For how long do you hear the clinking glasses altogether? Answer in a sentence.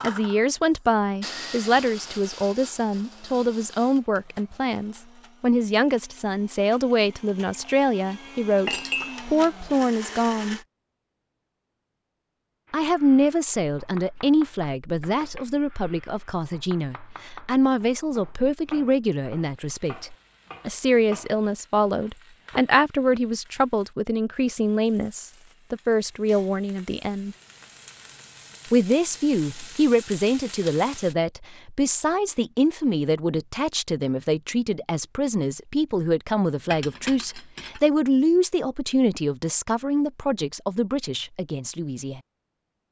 The clinking glasses can be heard for 3 seconds in total.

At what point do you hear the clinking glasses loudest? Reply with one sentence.
The loudest moment of the clinking glasses is at 9 seconds.